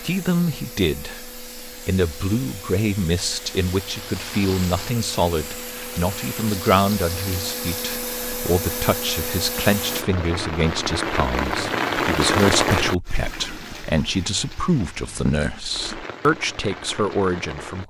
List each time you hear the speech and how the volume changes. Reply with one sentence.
The speech can be heard from 0.0 to 17.8 s, at a steady volume.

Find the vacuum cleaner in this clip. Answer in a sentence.
You can hear the vacuum cleaner from 0.0 to 10.1 s.